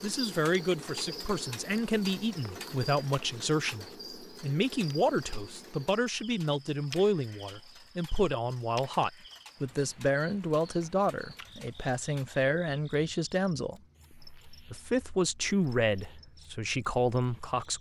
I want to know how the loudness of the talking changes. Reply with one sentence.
The loudness of the talking stays about the same.